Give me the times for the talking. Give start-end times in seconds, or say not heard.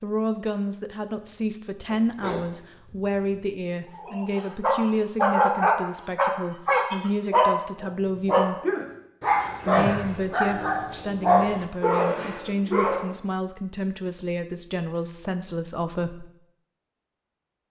0.0-8.6, 9.7-16.3.